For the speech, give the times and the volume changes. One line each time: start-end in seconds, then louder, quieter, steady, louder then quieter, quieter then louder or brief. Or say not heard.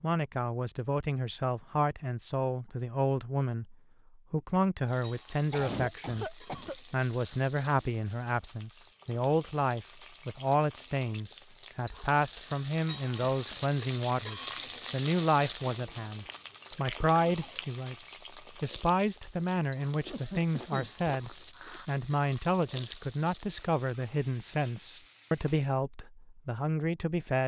0.0-27.4 steady.